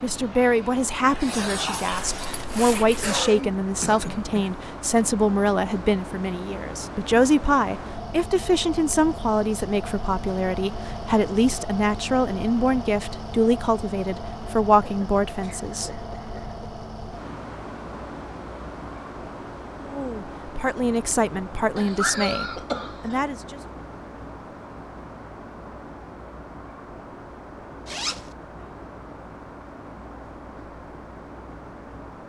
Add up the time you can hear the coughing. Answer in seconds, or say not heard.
5 s.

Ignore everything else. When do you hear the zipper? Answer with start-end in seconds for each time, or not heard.
1.9-3.2, 27.9-28.3.